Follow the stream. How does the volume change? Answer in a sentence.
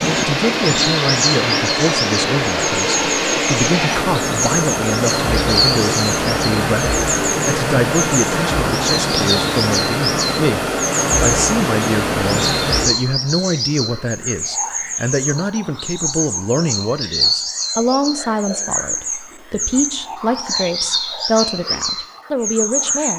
The loudness of the stream stays about the same.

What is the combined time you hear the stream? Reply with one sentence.
The stream can be heard for 13 seconds in total.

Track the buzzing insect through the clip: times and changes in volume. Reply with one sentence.
You can't hear the buzzing insect here.